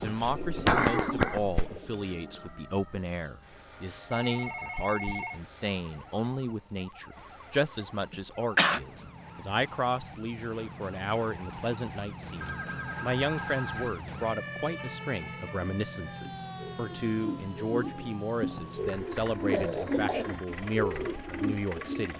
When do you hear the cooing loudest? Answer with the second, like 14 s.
1 s.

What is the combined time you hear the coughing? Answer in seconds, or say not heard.
4 s.